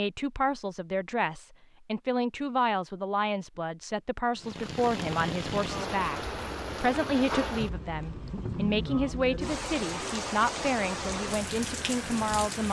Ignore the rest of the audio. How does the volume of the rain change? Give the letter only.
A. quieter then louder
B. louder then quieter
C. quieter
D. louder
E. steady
E.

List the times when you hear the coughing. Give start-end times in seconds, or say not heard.
not heard.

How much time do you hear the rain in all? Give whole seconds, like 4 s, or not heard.
8 s.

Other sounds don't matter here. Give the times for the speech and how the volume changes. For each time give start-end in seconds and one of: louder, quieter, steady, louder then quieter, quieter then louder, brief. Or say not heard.
0.0-12.6 steady.